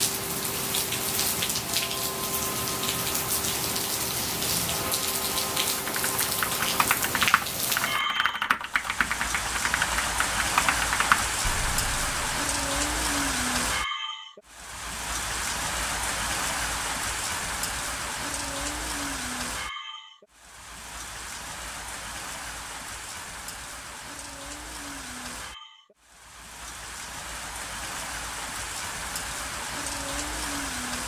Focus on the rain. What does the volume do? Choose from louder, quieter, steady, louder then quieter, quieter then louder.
quieter.